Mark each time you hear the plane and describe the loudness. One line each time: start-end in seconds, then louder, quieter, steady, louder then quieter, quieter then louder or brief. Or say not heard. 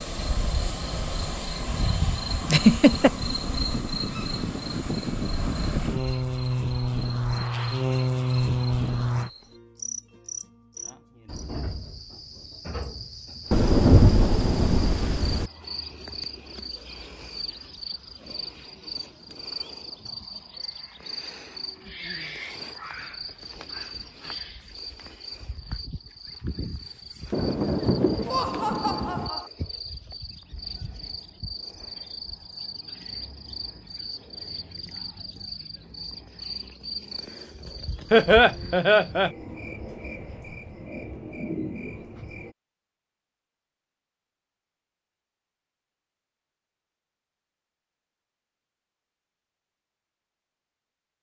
0.0-9.3 louder.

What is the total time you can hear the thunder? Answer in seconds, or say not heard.
4 s.